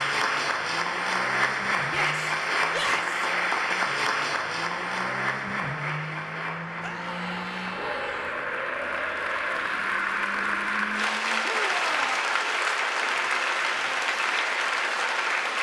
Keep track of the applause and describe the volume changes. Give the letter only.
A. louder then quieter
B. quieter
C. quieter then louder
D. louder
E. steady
C.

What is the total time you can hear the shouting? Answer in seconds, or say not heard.
4 s.